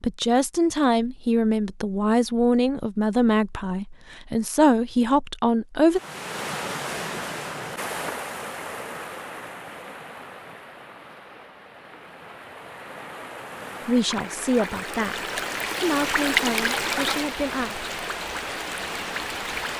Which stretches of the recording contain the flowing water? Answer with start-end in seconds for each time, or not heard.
5.9-19.7.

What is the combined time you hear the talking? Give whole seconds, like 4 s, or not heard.
10 s.